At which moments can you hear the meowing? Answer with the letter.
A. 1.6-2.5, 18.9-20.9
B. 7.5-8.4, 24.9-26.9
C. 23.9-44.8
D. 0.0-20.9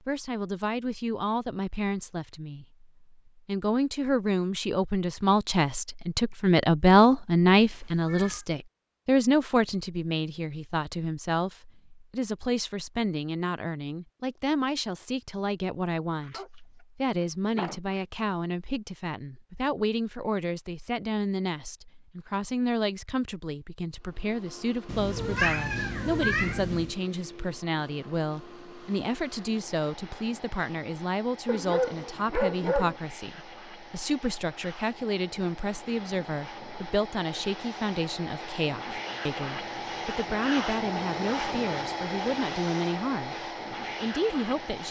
B.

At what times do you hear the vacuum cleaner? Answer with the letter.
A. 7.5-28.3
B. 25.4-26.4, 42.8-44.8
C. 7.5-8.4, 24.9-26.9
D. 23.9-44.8
D.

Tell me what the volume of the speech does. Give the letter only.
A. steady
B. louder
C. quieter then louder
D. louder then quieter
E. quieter
E.